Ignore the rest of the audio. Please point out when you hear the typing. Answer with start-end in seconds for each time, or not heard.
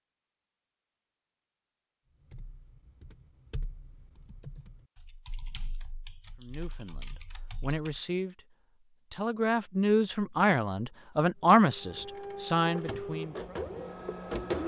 2.2-8.0.